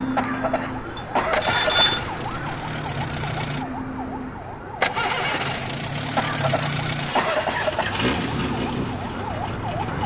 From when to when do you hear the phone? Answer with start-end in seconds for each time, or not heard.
0.9-2.0.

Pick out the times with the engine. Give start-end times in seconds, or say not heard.
0.0-10.0.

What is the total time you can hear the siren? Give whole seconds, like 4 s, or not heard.
10 s.